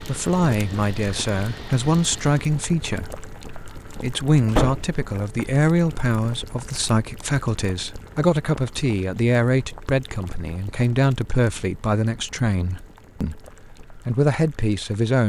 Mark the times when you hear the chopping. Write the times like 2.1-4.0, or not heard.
not heard.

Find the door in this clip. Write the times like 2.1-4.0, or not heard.
4.5-4.9.